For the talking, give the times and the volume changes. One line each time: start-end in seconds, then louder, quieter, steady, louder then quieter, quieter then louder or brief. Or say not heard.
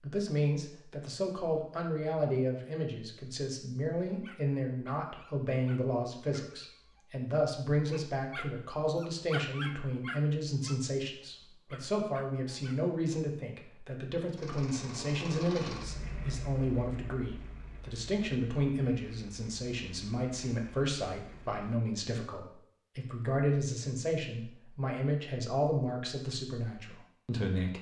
0.0-27.7 steady.